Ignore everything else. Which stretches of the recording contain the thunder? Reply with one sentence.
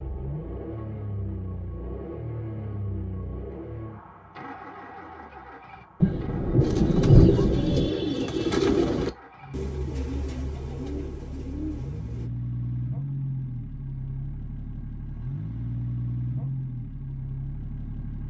The thunder can be heard from 6.0 to 7.9 s.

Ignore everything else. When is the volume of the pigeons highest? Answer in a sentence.
The volume of the pigeons peaks at 9 seconds.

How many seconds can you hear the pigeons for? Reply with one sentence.
You can hear the pigeons for 6 seconds altogether.